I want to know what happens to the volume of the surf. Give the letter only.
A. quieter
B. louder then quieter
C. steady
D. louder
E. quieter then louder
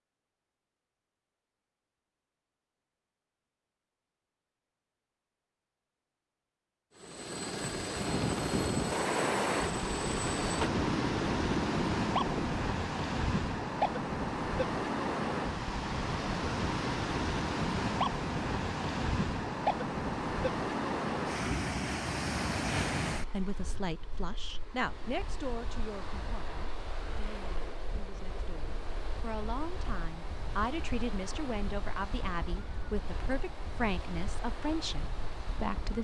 A.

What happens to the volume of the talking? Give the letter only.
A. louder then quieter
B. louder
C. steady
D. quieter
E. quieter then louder
E.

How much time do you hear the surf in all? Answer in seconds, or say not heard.
28 s.